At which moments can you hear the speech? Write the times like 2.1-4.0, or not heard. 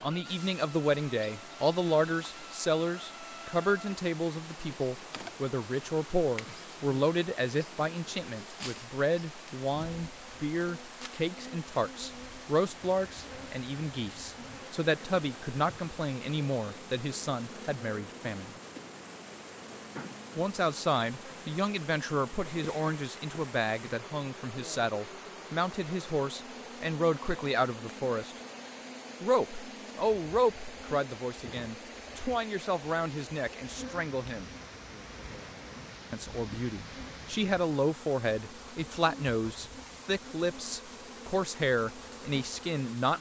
0.0-18.5, 20.4-28.4, 29.2-34.5, 36.1-43.1.